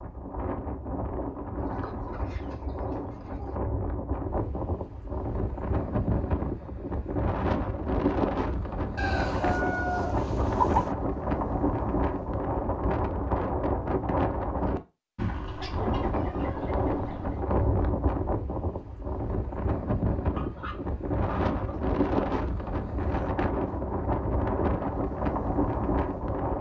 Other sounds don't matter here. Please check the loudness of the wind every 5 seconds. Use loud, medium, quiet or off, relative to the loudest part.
medium, loud, loud, loud, loud, loud.